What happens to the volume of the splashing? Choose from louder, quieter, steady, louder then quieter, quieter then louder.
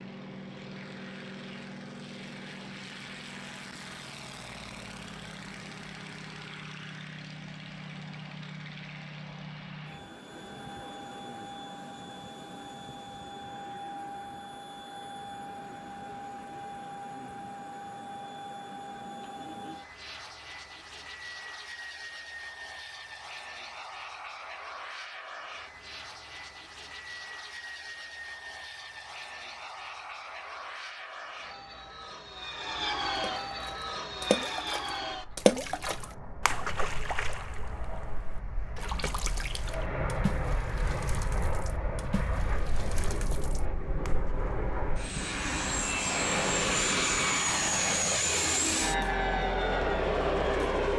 quieter.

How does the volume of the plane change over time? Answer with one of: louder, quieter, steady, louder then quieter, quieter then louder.
louder.